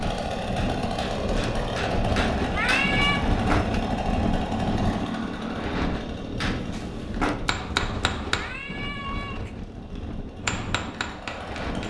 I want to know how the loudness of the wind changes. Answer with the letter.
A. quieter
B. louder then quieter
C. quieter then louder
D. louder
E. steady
A.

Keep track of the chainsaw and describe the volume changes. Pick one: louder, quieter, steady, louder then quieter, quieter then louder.
quieter.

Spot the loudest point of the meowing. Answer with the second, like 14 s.
3 s.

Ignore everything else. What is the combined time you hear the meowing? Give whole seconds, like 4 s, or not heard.
2 s.